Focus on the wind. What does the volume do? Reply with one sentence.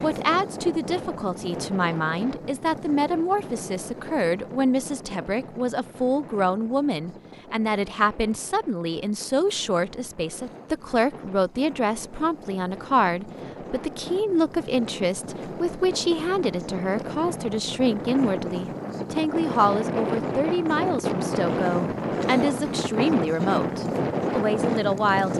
The loudness of the wind goes down, then up.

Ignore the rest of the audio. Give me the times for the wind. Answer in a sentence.
You can hear the wind from 0.0 to 25.3 s.